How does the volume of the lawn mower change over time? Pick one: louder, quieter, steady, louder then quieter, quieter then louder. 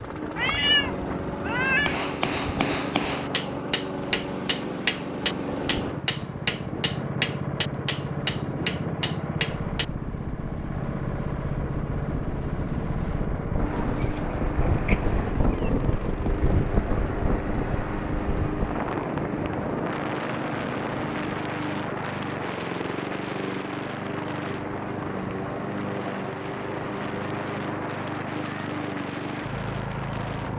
steady.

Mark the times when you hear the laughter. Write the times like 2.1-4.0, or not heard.
not heard.